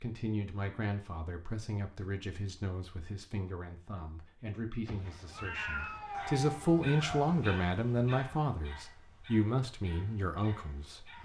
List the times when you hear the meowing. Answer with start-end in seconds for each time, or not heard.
4.8-6.8.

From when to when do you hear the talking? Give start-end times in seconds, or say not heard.
0.0-11.2.